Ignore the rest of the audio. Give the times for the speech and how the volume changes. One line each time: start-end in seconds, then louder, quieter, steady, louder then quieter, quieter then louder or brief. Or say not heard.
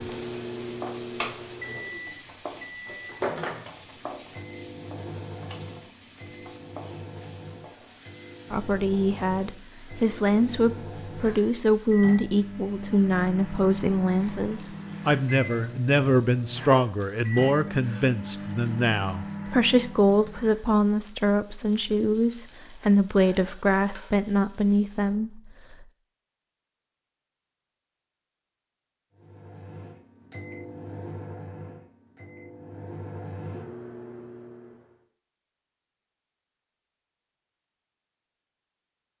8.5-25.9 steady.